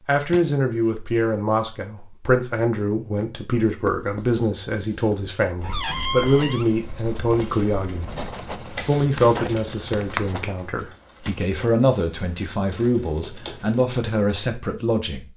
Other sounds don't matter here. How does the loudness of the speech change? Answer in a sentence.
The loudness of the speech stays about the same.